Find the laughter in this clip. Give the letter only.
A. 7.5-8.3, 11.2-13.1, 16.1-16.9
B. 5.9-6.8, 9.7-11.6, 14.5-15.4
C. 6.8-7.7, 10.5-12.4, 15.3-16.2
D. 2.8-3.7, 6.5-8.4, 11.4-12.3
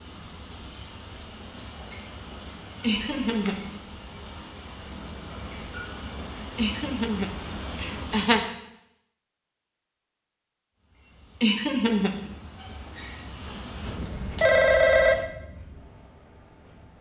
D.